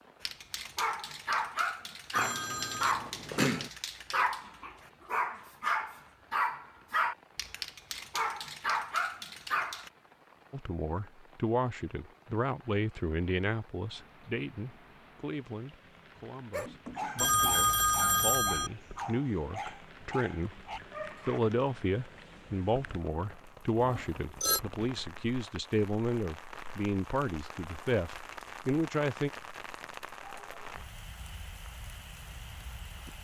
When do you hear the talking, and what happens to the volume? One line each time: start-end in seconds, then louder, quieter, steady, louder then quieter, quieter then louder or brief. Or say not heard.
10.5-20.6 quieter then louder
21.2-29.3 steady.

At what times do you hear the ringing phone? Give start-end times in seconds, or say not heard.
2.1-3.7, 17.1-18.7, 23.8-24.6.